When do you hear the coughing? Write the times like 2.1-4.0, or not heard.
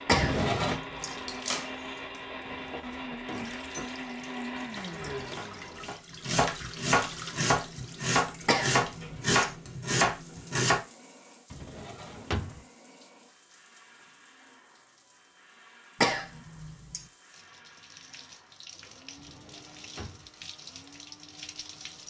0.1-1.1, 8.4-9.6, 16.0-17.1.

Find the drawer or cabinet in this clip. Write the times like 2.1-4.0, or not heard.
0.1-0.8, 11.5-12.6, 19.1-20.3.